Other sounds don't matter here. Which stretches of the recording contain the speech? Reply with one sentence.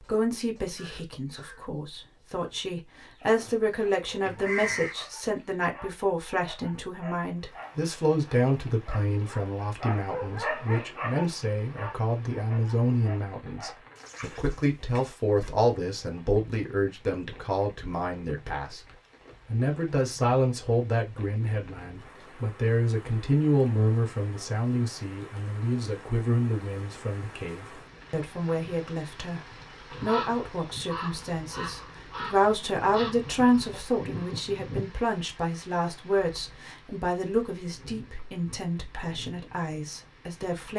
The speech can be heard from 0.0 to 18.8 s and from 19.4 to 40.7 s.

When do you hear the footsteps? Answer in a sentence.
The footsteps can't be heard in this clip.